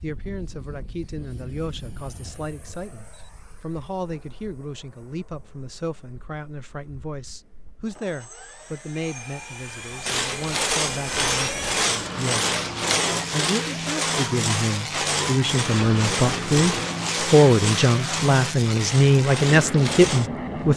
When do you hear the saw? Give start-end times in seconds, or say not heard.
10.1-20.3.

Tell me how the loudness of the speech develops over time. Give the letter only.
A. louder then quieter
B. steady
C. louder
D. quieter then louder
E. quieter
C.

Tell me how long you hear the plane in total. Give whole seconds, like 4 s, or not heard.
21 s.